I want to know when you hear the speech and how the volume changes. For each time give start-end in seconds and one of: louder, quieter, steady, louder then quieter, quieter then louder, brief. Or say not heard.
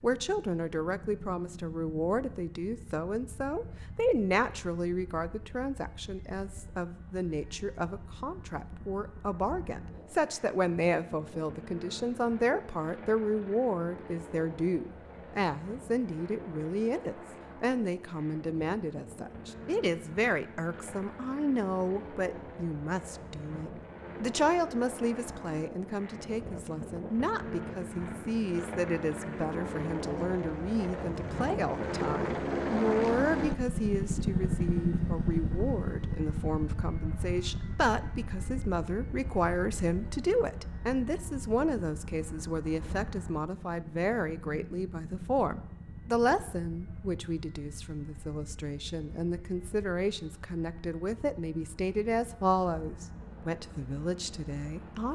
0.0-55.0 steady.